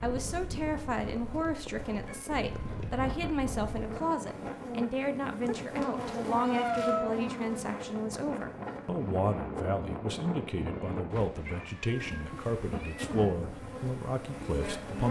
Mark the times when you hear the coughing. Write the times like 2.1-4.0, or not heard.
not heard.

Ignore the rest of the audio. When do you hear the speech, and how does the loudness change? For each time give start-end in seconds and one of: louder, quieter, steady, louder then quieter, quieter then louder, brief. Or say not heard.
0.0-15.0 steady.